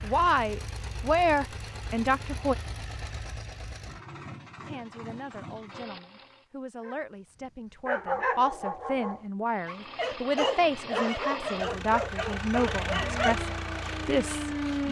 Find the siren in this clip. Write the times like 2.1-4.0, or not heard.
12.9-14.8.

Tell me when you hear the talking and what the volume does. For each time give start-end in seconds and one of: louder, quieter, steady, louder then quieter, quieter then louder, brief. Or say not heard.
0.0-2.5 brief
4.7-14.8 louder.